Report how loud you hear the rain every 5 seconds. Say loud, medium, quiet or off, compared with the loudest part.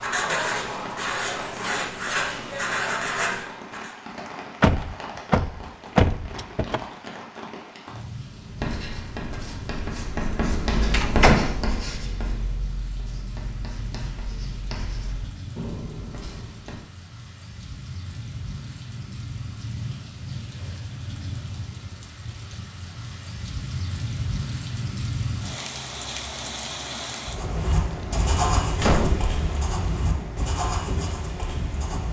medium, medium, medium, medium, loud, loud, loud.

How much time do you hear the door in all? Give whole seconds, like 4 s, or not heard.
3 s.